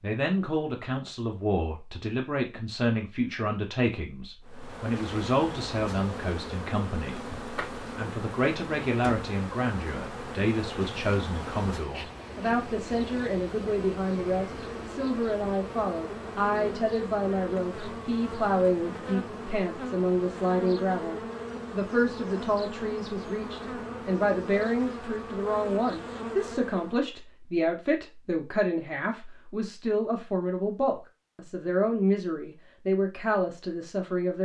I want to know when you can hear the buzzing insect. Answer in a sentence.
The buzzing insect can be heard from 4.4 to 27.1 s.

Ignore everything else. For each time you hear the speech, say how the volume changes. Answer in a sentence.
The speech can be heard from 0.0 to 34.4 s, at a steady volume.